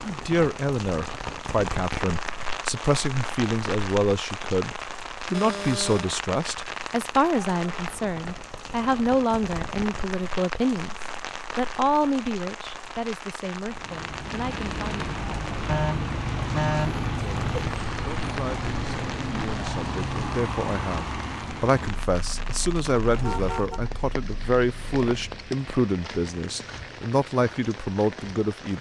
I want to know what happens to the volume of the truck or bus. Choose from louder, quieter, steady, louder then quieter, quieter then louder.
quieter.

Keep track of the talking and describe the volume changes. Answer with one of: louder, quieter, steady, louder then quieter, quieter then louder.
steady.